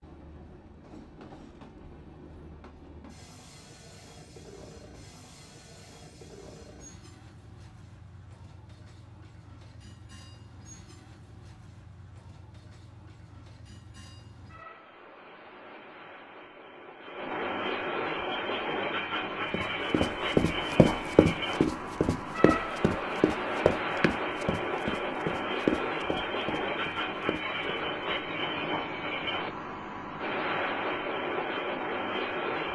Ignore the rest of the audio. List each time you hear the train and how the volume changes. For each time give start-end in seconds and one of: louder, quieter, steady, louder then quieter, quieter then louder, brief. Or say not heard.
0.0-32.6 louder.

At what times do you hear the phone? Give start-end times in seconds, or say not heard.
not heard.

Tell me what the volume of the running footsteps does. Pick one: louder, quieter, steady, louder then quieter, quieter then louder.
quieter.